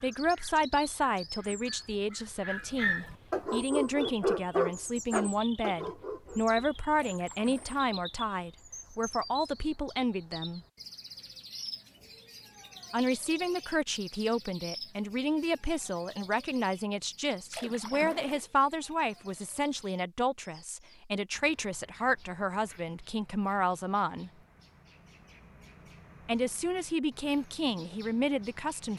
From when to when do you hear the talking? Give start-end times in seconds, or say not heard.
0.0-10.6, 12.9-24.3, 26.2-28.9.